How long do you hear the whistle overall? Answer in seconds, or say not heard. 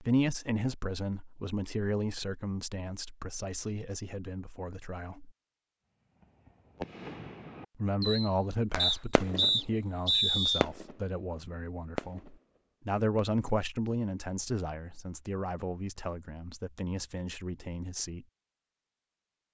2 s.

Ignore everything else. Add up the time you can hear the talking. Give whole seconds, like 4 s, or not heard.
16 s.